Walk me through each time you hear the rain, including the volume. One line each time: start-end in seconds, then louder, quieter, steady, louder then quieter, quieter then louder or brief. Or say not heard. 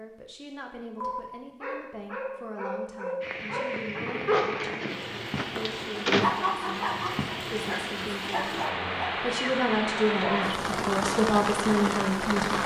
3.2-12.6 louder.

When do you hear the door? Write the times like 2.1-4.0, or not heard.
4.3-6.3.